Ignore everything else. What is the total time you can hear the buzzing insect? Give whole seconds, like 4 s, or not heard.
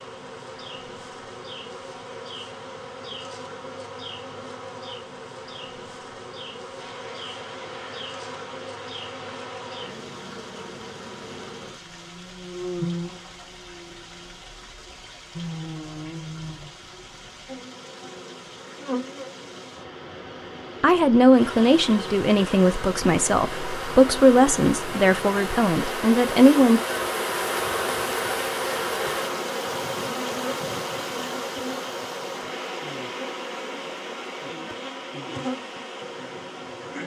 37 s.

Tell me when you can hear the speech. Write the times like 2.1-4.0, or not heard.
20.8-26.8.